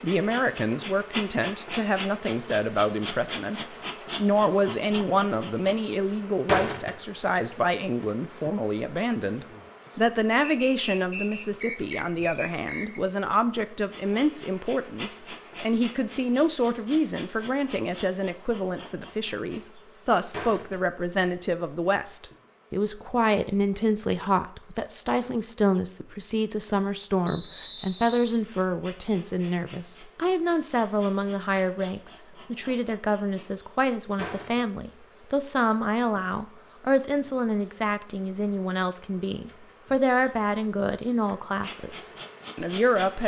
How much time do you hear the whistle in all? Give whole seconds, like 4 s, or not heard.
4 s.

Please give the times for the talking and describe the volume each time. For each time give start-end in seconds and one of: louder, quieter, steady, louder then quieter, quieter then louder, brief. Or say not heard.
0.0-43.2 steady.